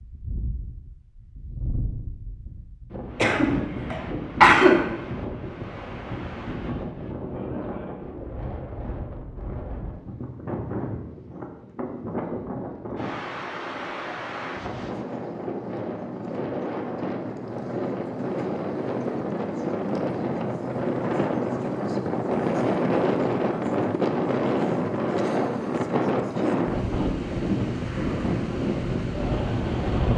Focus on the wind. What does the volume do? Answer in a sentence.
The volume of the wind goes up.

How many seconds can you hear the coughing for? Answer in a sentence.
You can hear the coughing for 2 seconds altogether.